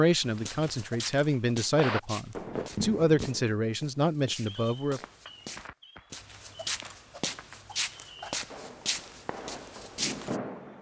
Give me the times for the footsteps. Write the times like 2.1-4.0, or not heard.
0.2-10.4.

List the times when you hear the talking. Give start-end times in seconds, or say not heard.
0.0-5.0.